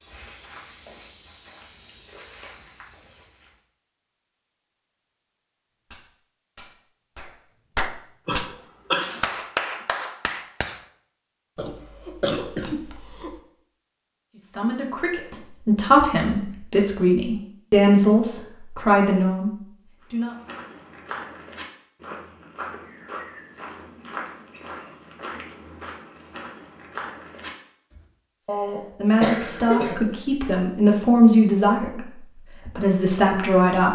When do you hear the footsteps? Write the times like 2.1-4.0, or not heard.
0.0-3.5, 20.0-28.1.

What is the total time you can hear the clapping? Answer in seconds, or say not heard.
5 s.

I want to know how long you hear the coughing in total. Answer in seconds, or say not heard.
4 s.